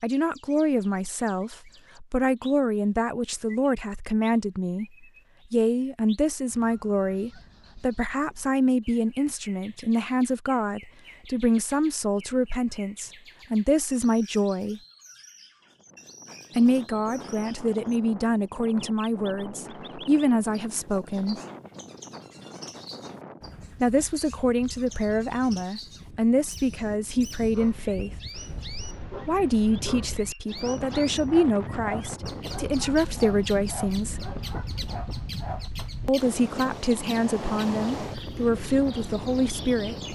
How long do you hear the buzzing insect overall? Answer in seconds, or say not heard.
not heard.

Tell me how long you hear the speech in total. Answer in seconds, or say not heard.
32 s.